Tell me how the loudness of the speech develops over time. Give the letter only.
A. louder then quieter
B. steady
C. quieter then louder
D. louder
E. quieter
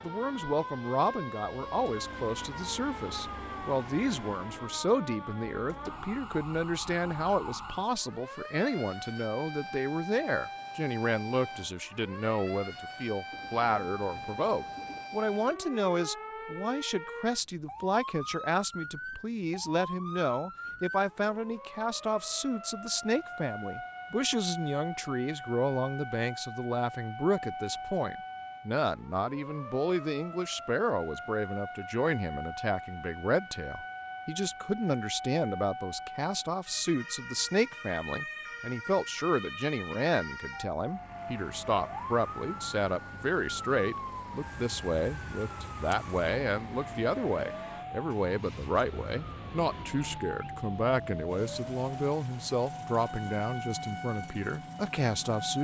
B.